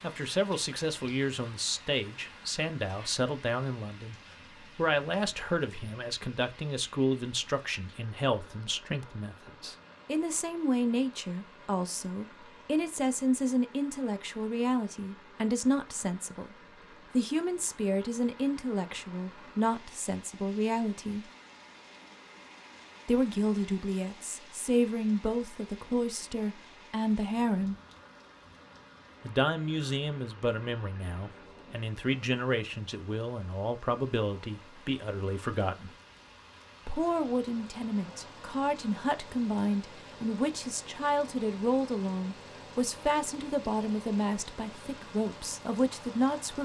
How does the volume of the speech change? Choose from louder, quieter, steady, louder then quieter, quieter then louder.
steady.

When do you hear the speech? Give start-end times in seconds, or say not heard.
0.0-21.3, 23.1-27.8, 29.2-35.9, 36.9-46.6.